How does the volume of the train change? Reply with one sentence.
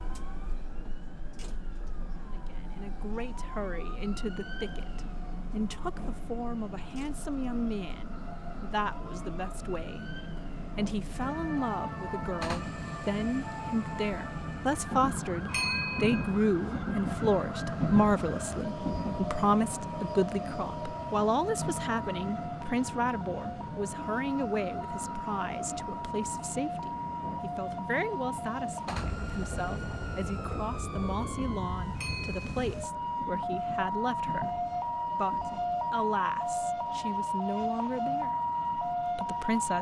The volume of the train goes up, then down.